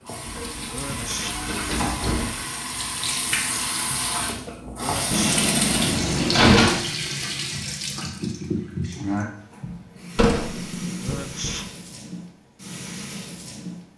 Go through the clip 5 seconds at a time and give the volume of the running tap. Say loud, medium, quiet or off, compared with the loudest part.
loud, loud, medium.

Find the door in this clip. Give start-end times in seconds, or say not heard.
0.2-2.3, 5.1-6.8, 10.2-11.6.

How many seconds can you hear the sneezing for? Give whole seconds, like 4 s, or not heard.
2 s.